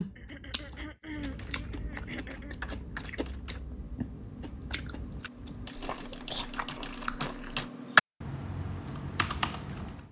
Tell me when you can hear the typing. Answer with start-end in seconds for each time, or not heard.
1.3-10.0.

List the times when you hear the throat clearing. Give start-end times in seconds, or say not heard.
0.1-2.5, 5.7-6.5.